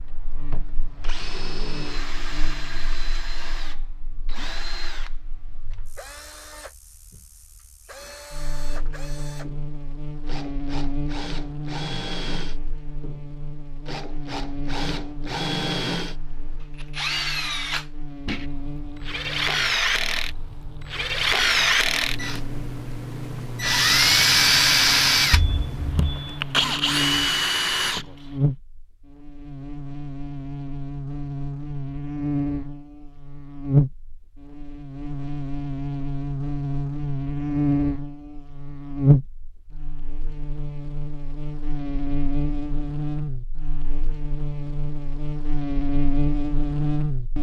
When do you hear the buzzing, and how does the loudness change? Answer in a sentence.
The buzzing can be heard from 0.0 to 47.3 s, getting louder.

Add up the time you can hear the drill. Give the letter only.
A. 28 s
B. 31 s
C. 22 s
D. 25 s
A.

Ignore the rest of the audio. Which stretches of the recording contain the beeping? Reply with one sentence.
The beeping can be heard from 25.3 to 26.4 s.